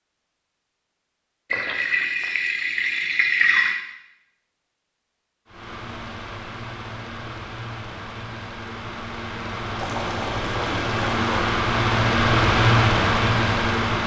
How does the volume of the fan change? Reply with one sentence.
The loudness of the fan goes up.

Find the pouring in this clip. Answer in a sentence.
You can hear the pouring from 1.5 to 3.8 s and from 9.8 to 11.5 s.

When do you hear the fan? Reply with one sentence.
The fan can be heard from 5.5 to 14.0 s.